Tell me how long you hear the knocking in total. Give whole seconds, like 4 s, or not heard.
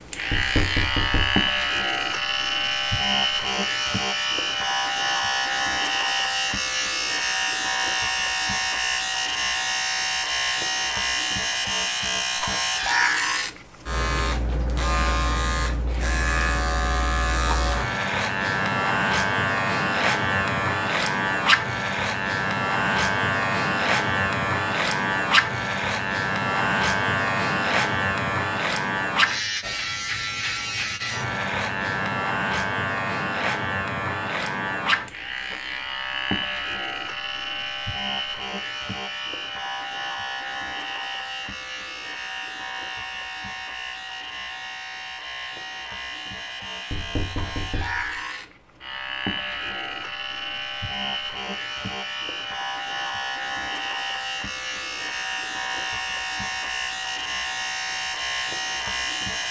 2 s.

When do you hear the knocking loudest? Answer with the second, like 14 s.
1 s.